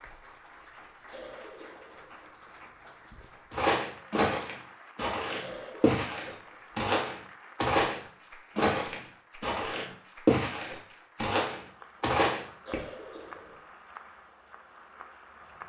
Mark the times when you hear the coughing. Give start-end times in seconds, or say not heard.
1.1-2.3, 5.4-6.9, 12.6-13.7.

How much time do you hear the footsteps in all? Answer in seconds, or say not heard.
9 s.